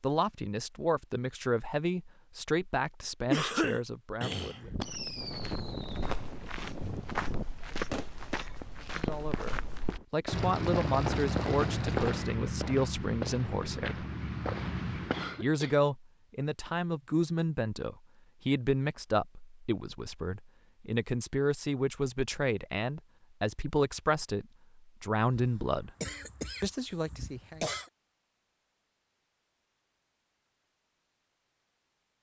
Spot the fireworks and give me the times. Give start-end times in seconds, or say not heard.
4.5-12.3.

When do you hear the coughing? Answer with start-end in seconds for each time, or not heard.
3.3-4.7, 15.1-15.8, 25.3-27.9.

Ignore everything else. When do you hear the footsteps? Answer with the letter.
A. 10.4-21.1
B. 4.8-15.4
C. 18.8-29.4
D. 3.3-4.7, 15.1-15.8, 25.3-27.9
B.